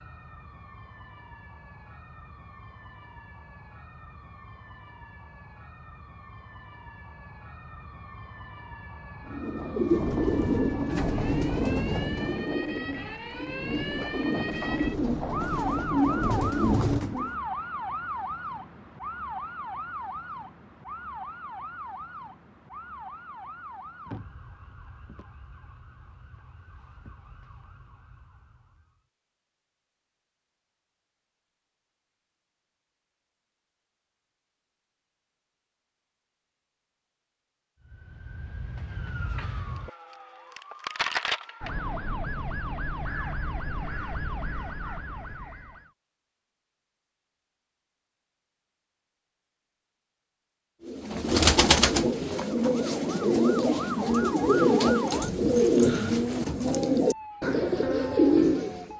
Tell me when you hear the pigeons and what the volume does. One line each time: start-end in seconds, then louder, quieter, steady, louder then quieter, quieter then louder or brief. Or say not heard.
9.2-17.4 quieter then louder
50.9-58.9 steady.